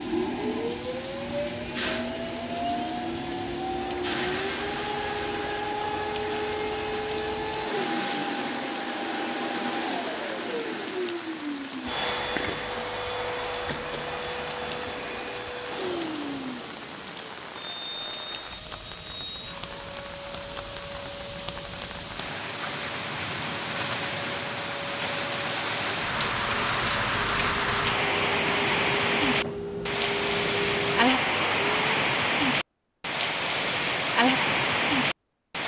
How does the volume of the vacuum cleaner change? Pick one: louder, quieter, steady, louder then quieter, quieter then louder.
quieter then louder.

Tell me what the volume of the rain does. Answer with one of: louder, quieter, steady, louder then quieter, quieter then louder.
louder.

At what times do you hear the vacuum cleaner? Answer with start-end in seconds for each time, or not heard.
0.0-31.9.